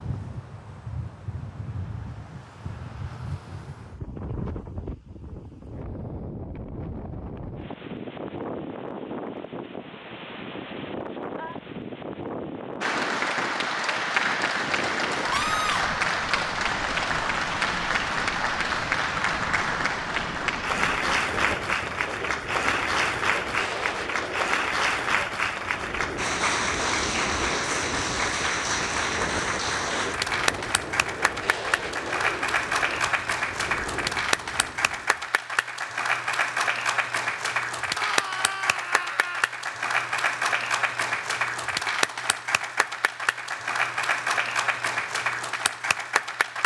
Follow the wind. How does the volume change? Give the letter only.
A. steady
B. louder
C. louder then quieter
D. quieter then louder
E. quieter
A.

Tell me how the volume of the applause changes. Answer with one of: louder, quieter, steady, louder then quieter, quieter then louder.
steady.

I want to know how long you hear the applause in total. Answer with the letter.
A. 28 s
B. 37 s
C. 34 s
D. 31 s
C.